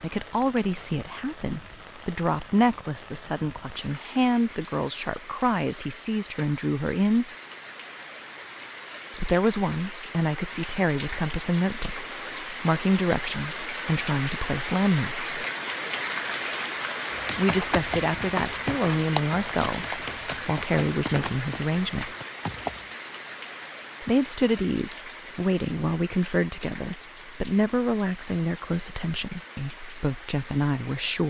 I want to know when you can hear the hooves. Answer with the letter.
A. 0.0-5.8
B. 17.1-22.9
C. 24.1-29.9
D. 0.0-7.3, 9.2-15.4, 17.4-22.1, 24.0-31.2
B.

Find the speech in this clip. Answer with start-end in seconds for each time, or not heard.
0.0-7.3, 9.2-15.4, 17.4-22.1, 24.0-31.2.